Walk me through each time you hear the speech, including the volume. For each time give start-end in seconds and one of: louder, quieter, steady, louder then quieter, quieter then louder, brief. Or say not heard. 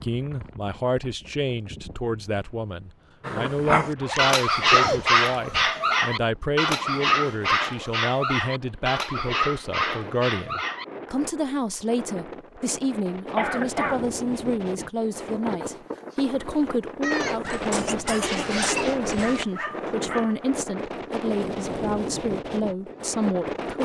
0.0-23.8 steady.